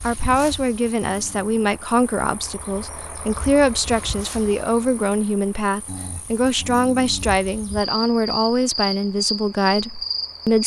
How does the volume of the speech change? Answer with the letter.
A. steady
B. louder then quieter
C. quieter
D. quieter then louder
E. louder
A.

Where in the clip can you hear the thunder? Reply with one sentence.
You can't hear the thunder here.